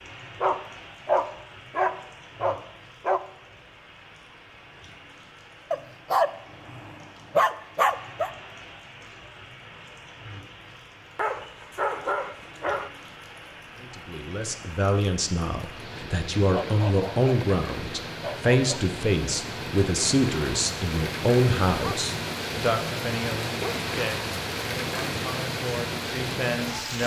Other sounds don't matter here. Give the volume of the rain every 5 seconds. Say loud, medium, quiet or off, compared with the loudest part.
quiet, quiet, quiet, medium, loud, loud.